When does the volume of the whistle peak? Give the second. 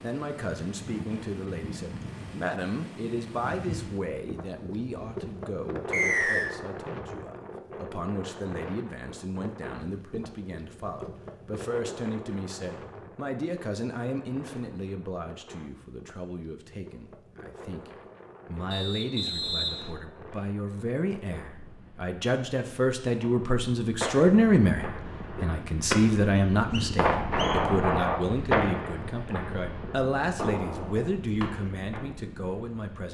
6 s.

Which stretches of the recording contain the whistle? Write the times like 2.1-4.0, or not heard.
5.9-6.5, 18.7-19.9, 26.4-27.6.